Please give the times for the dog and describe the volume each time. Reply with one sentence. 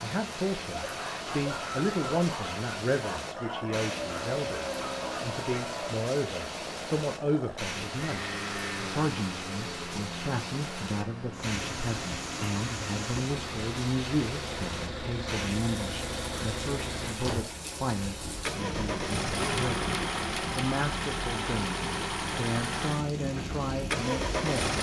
You can hear the dog from 0.7 to 6.0 s, at a steady volume.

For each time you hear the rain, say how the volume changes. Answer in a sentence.
The rain can be heard from 0.0 to 24.6 s, at a steady volume.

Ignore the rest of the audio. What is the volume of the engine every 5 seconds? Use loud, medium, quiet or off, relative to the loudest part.
medium, medium, medium, loud, loud.